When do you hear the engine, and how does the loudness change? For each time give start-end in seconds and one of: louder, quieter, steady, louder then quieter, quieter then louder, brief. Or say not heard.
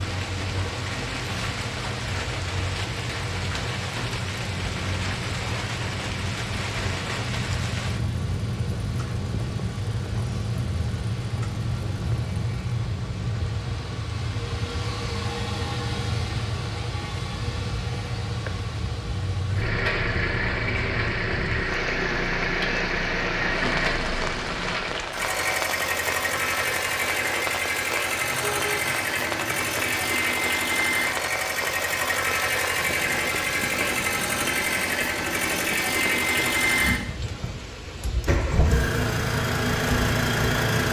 0.0-40.8 louder.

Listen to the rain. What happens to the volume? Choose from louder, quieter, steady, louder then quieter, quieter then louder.
steady.